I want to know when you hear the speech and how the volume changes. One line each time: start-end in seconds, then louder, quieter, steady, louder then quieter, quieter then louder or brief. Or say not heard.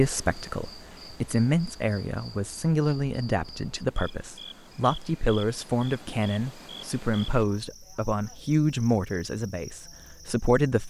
0.0-10.8 steady.